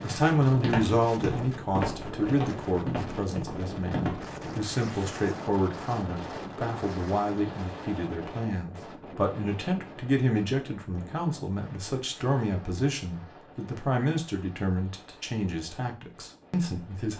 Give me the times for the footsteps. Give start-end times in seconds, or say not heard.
0.0-4.5.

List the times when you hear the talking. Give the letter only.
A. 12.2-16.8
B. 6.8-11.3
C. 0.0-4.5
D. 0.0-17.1
D.